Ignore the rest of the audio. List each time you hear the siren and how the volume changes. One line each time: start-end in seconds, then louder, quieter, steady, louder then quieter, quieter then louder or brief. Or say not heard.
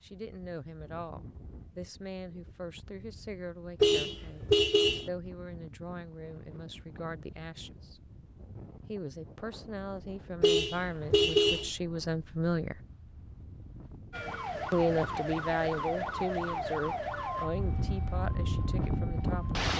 14.1-19.4 quieter.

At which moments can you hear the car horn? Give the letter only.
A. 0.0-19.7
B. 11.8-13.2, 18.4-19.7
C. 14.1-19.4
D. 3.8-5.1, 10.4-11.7
D.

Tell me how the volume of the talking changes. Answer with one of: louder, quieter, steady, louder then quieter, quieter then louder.
louder then quieter.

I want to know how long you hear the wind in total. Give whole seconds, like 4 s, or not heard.
20 s.